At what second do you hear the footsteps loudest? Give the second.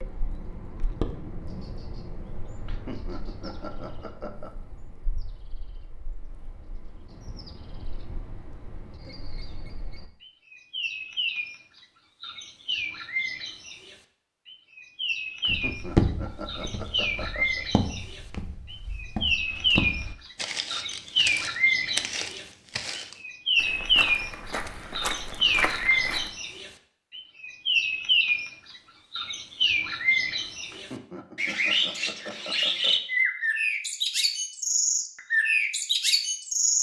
16 s.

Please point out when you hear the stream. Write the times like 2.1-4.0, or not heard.
not heard.